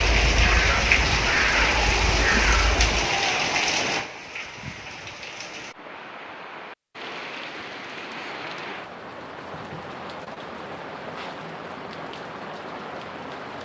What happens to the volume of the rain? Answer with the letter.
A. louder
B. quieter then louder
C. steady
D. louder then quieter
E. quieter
E.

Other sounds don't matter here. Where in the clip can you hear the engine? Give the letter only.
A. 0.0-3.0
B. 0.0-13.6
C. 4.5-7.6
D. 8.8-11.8
A.